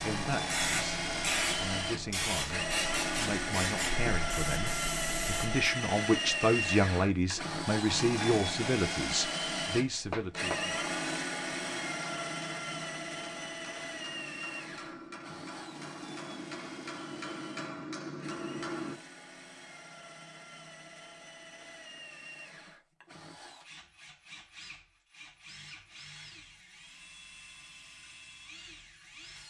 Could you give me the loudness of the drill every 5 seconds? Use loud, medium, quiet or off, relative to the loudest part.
loud, loud, loud, quiet, quiet, quiet.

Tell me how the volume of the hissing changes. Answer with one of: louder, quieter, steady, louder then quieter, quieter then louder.
quieter.